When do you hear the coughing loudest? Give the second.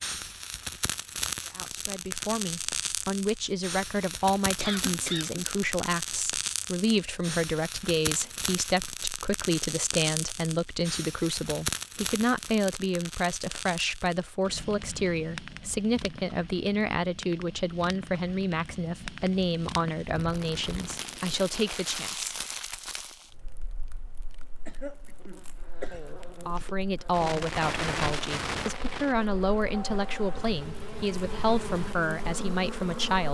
5 s.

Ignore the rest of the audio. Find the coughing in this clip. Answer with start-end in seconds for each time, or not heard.
4.6-5.7, 24.6-26.0.